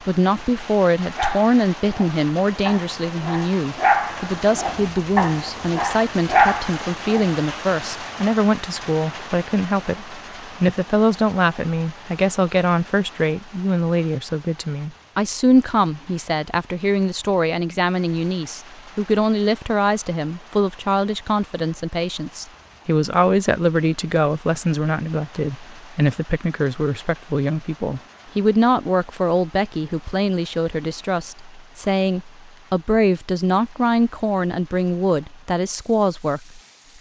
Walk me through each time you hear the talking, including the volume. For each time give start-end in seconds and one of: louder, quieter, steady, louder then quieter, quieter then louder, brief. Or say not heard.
0.1-36.9 steady.